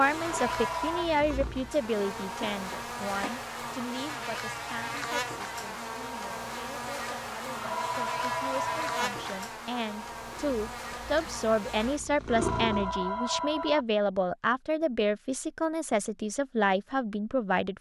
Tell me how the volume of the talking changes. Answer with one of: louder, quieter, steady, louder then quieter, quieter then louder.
quieter then louder.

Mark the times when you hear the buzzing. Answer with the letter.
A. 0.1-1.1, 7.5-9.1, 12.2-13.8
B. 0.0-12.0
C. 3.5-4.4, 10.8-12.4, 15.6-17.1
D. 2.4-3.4
B.